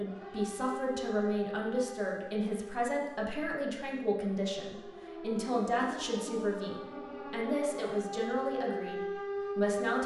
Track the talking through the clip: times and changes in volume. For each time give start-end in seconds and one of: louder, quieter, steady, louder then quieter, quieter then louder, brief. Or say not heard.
0.0-10.0 steady.